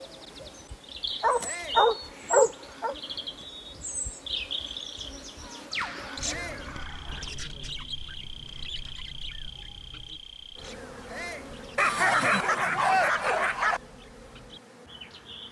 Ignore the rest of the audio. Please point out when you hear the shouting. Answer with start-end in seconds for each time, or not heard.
1.4-1.9, 6.2-6.7, 11.1-11.6.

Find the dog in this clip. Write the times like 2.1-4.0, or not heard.
1.2-3.0, 5.8-7.3, 11.8-13.8.